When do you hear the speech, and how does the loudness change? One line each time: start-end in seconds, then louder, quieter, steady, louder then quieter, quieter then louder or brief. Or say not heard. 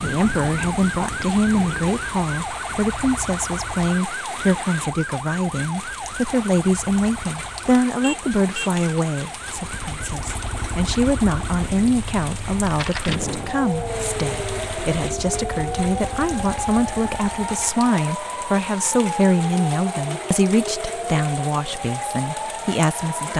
0.0-23.3 steady.